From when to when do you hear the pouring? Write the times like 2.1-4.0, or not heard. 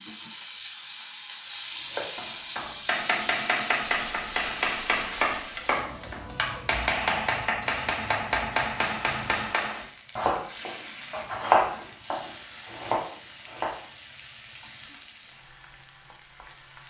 not heard.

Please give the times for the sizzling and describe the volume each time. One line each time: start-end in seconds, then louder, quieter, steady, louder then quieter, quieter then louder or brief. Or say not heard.
0.0-16.8 quieter.